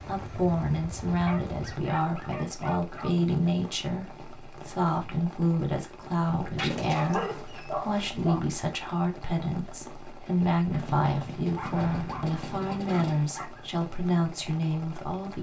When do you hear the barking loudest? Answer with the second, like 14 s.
7 s.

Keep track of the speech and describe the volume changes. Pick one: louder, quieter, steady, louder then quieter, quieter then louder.
steady.